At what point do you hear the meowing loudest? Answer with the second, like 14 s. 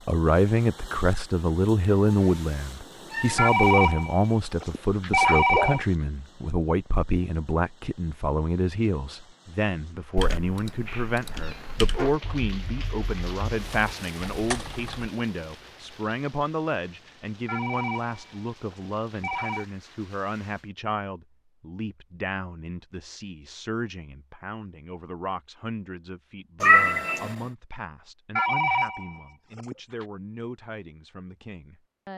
27 s.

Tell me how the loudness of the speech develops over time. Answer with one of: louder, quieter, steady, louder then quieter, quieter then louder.
quieter.